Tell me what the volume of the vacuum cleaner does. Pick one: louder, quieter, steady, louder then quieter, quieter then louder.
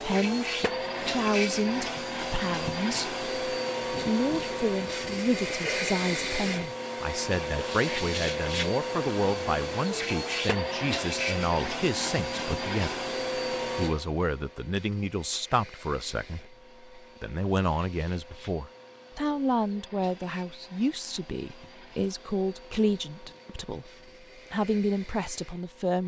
quieter.